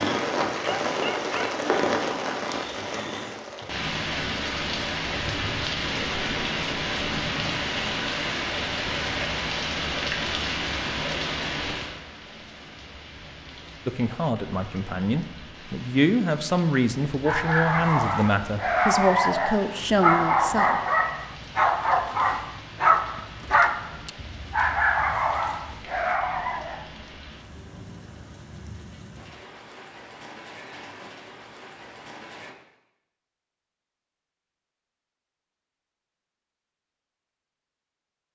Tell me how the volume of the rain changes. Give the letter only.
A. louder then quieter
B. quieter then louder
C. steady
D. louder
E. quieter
E.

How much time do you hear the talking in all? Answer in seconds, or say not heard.
7 s.